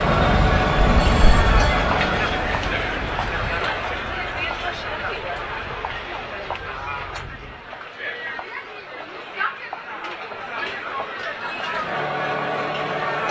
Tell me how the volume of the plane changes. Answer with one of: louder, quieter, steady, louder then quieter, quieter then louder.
quieter.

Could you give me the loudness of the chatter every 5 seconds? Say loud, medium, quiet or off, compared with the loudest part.
loud, medium, loud.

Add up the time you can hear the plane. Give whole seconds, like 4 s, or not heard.
8 s.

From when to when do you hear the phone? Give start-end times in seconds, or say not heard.
0.8-1.8.